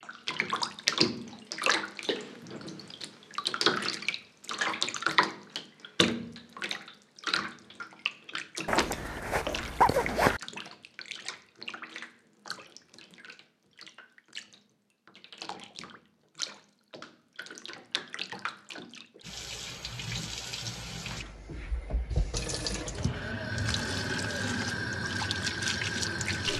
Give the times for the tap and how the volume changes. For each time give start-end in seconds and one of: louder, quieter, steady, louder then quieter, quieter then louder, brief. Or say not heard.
0.0-26.5 quieter then louder.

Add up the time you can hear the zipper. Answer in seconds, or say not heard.
2 s.